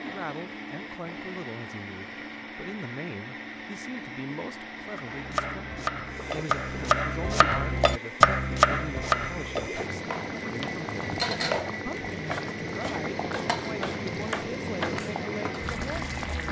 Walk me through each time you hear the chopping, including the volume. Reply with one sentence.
The chopping can be heard from 5.0 to 15.0 s, getting louder then quieter.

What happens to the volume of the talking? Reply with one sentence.
The volume of the talking stays about the same.